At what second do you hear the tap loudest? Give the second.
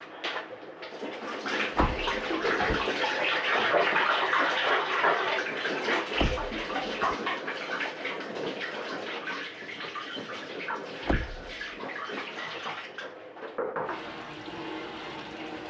4 s.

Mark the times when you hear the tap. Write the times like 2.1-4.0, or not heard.
0.0-15.6.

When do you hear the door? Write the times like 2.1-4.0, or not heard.
1.8-2.9, 6.2-7.2, 11.1-11.5.